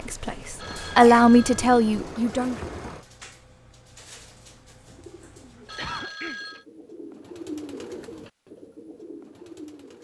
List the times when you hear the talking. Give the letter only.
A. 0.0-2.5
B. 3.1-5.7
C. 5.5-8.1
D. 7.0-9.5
A.